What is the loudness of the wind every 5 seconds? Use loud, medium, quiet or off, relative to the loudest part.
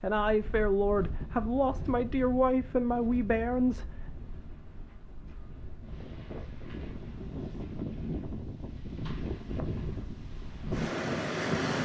quiet, medium, loud.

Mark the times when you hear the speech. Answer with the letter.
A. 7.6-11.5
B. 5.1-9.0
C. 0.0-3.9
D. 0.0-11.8
C.